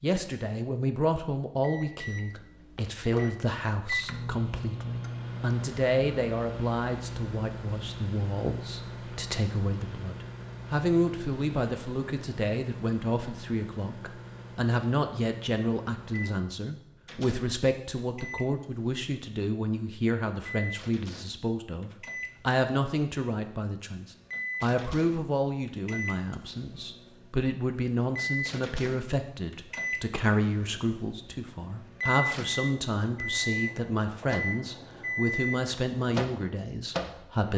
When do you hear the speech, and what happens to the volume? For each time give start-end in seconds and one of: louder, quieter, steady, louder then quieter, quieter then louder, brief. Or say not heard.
0.0-37.5 steady.